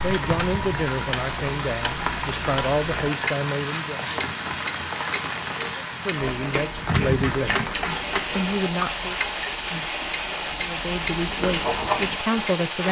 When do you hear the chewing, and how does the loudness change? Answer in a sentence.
The chewing can be heard from 6.2 to 12.5 s, getting quieter then louder.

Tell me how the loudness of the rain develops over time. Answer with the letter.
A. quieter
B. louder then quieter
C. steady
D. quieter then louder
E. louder
C.